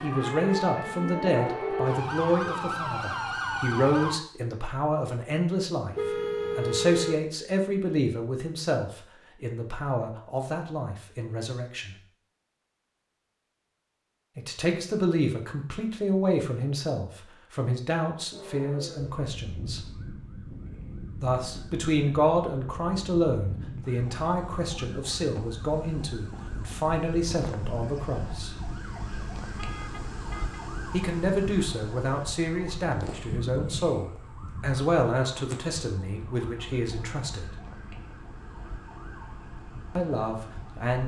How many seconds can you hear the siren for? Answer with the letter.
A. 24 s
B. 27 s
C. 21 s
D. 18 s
B.